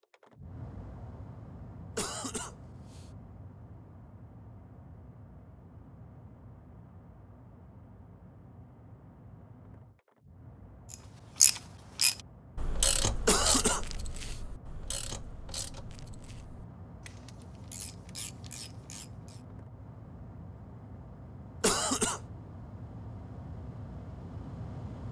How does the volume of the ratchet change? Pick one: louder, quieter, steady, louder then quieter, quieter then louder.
quieter then louder.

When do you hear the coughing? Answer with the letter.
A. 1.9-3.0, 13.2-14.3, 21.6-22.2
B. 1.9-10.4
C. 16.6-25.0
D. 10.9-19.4
A.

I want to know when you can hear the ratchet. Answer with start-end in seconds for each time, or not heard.
10.9-19.4.